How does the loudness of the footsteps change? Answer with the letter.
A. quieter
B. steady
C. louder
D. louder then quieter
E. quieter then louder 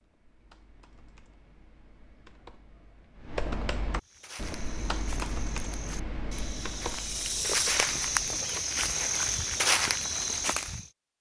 C.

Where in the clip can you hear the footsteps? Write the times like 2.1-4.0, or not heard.
4.0-10.9.